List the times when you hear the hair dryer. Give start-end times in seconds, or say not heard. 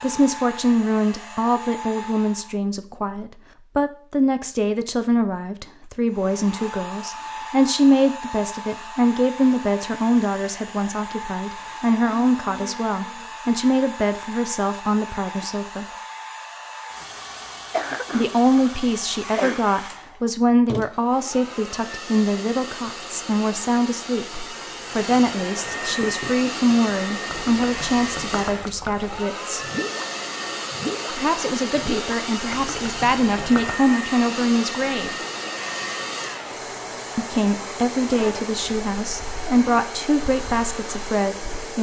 0.0-2.6, 6.0-41.7.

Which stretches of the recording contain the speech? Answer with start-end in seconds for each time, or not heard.
0.0-15.8, 18.1-29.6, 31.1-35.1, 37.1-41.7.